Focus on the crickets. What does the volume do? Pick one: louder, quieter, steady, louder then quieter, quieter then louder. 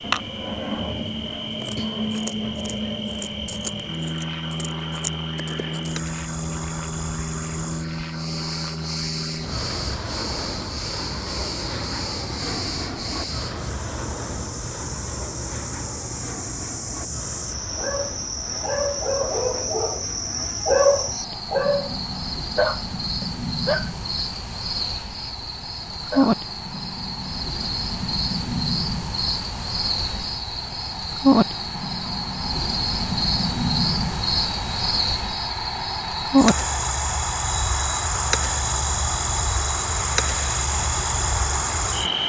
louder.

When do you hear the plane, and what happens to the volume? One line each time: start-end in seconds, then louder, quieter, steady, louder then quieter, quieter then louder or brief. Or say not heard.
0.0-42.2 quieter then louder.